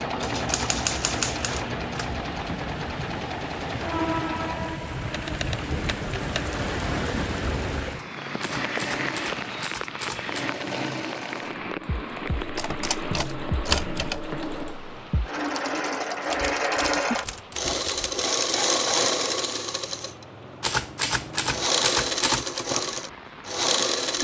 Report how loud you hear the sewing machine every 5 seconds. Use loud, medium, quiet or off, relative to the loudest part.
medium, medium, medium, loud, loud.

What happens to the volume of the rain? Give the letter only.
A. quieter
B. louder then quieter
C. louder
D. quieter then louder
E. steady
A.